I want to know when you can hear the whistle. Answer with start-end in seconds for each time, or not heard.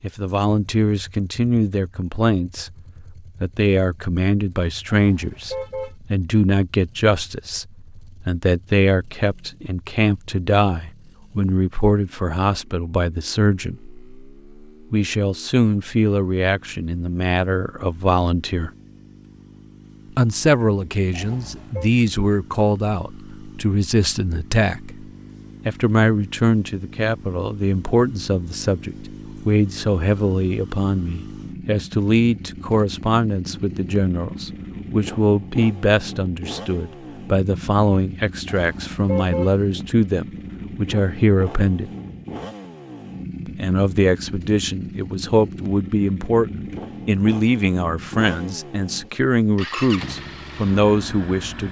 not heard.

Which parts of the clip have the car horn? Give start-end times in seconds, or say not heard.
4.8-5.9, 21.1-21.9, 38.5-39.5.